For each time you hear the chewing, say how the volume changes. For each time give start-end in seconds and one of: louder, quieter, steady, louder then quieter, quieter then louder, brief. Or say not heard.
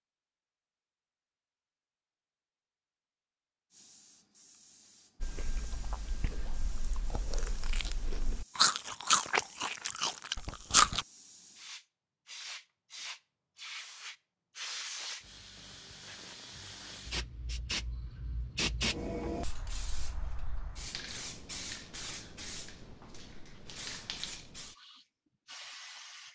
5.2-11.1 louder then quieter.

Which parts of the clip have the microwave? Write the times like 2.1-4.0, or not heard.
not heard.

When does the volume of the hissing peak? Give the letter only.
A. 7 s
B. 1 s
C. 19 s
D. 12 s
C.